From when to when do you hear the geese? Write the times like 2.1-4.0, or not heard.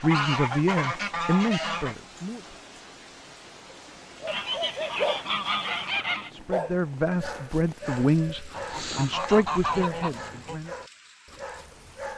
0.0-1.9, 4.2-6.3, 8.5-10.6.